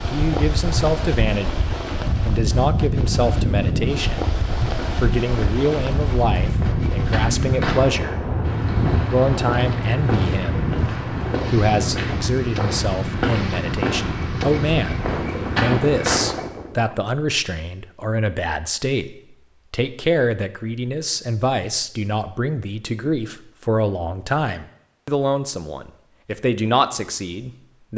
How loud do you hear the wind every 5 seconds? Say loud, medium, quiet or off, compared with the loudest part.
loud, loud, medium, loud, off, off.